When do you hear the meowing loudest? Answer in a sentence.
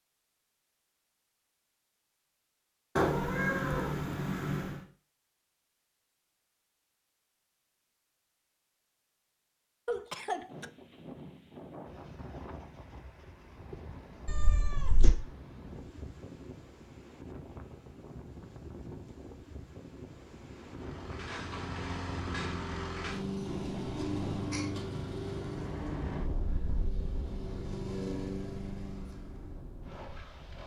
The volume of the meowing peaks at 3 seconds.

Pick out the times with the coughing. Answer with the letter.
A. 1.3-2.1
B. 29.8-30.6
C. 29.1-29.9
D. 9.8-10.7
D.